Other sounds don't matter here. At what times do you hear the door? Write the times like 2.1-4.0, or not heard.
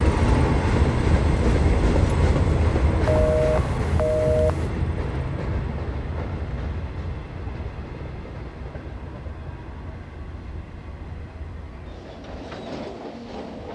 not heard.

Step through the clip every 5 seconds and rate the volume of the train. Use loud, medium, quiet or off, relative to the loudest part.
loud, medium, quiet.